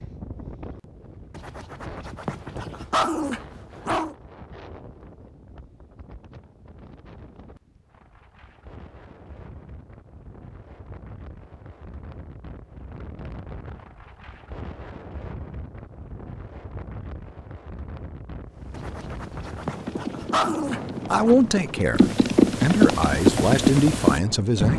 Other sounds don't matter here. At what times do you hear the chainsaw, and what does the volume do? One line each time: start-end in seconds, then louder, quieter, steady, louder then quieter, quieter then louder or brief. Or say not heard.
not heard.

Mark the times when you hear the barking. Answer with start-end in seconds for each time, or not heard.
1.3-4.2, 18.7-21.4.